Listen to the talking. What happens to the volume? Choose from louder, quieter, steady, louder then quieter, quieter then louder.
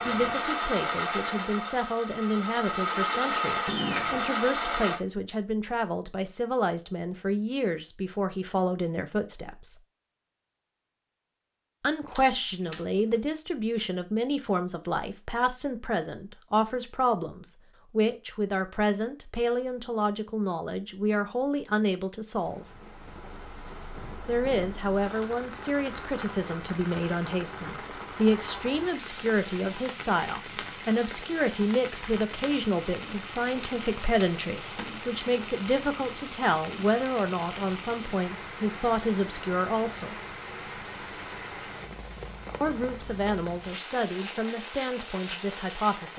steady.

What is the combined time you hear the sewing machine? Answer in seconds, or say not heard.
5 s.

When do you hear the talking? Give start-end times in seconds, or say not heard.
0.0-9.8, 11.8-22.6, 24.2-40.1, 42.6-46.1.